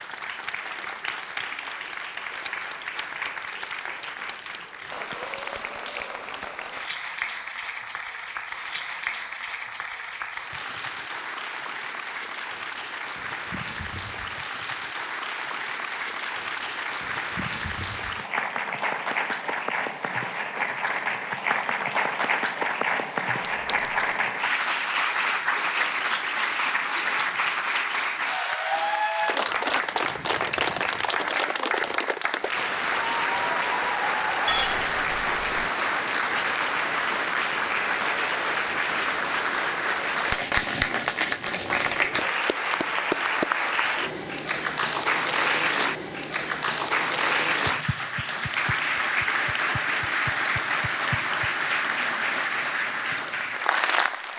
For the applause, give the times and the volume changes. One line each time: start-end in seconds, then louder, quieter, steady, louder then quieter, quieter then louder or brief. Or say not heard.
0.0-54.3 louder.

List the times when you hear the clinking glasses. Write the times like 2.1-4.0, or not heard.
23.6-24.1, 34.5-35.7.